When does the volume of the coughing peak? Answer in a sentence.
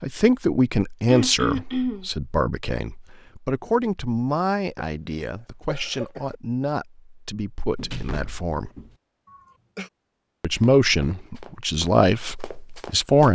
The volume of the coughing peaks at 2 seconds.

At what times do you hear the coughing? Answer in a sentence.
You can hear the coughing from 1.1 to 2.1 s, from 5.7 to 6.3 s and from 9.2 to 9.9 s.